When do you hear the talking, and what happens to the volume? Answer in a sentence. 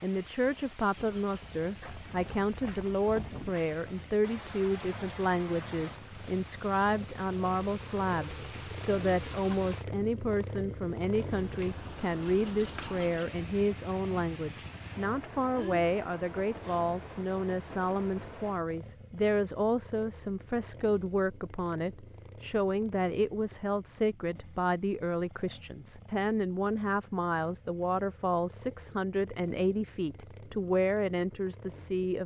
The talking can be heard from 0.0 to 32.2 s, at a steady volume.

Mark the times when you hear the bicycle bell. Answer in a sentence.
The bicycle bell can't be heard in this clip.